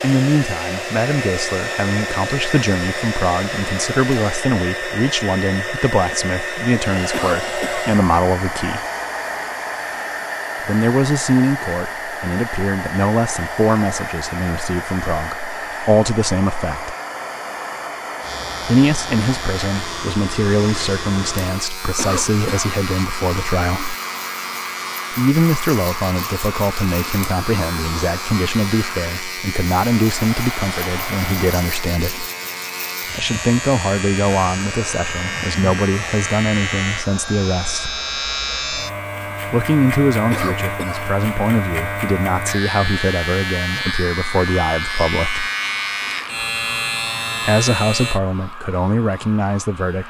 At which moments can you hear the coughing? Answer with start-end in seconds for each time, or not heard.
7.1-8.0, 21.9-22.7, 40.3-41.1.